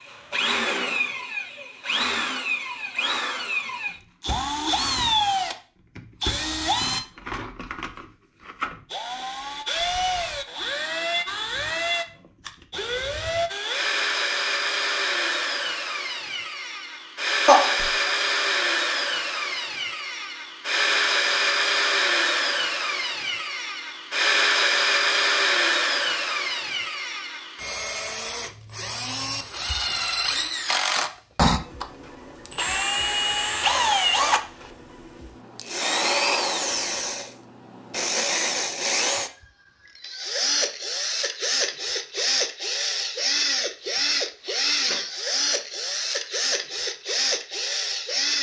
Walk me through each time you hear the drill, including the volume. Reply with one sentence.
You can hear the drill from 0.0 to 48.3 s, at a steady volume.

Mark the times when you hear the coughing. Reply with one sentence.
The coughing can be heard from 17.4 to 18.1 s.